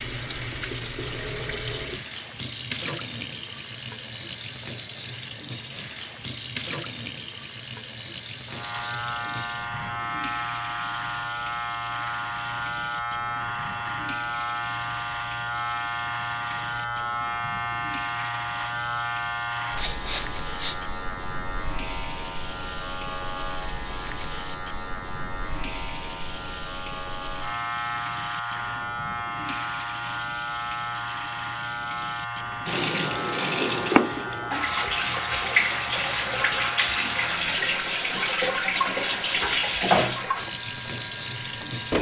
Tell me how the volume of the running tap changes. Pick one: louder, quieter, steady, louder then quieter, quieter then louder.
louder.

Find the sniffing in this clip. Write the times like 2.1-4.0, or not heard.
19.8-20.9.